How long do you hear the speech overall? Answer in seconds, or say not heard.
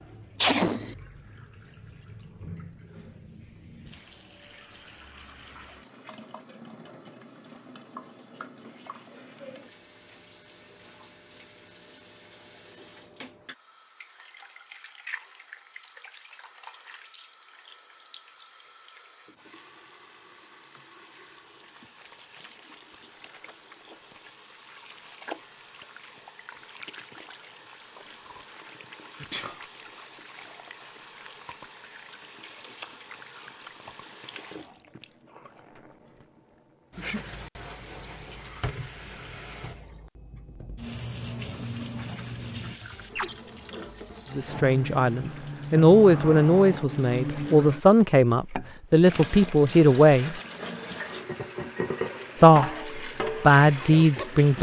8 s.